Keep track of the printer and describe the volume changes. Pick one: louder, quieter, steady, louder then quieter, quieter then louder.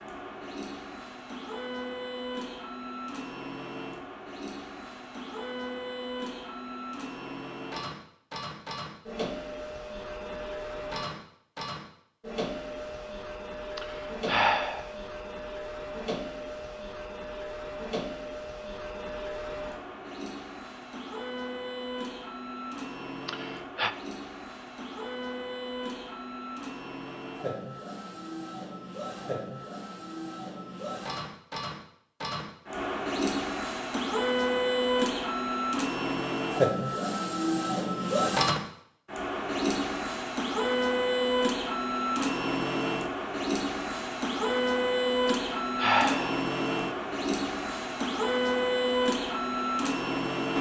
louder.